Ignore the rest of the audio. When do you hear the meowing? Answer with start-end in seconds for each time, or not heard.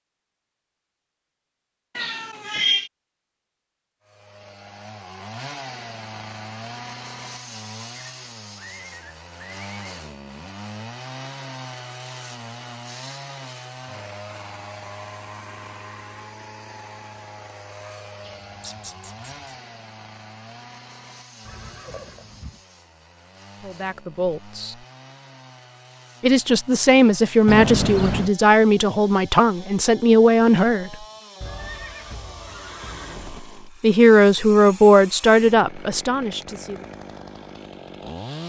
1.9-2.9, 18.2-19.6, 27.4-28.3.